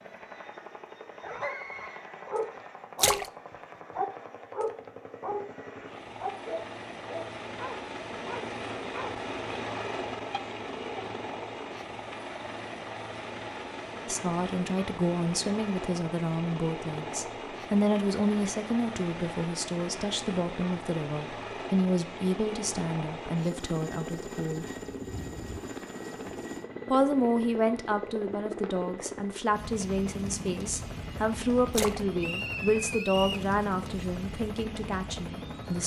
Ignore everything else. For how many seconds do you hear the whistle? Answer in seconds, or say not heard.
2 s.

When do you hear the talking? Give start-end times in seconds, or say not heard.
14.1-24.6, 26.9-35.8.